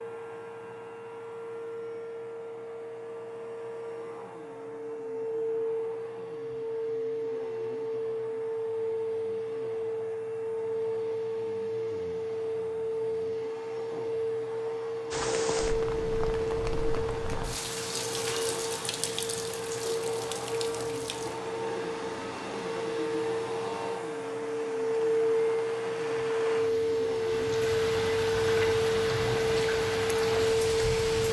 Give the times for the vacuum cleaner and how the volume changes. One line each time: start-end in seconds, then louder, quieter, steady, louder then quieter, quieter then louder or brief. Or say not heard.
0.0-31.2 louder.